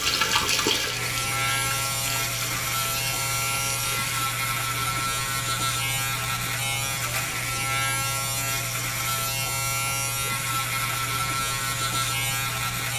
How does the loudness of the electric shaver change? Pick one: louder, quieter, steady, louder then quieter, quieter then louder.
steady.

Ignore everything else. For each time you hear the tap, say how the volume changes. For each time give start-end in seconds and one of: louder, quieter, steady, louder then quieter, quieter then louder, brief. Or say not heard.
0.0-4.3 quieter.